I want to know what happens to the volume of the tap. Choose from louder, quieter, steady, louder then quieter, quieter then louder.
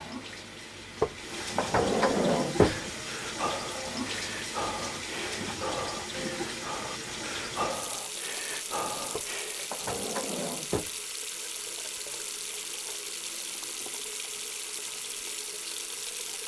steady.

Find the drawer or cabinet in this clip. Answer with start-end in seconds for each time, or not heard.
1.0-2.8, 9.1-10.9.